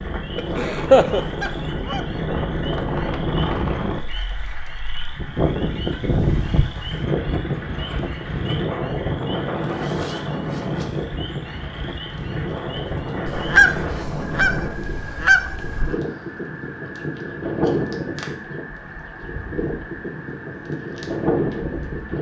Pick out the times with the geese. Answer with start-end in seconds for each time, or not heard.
0.3-2.0, 13.2-15.9.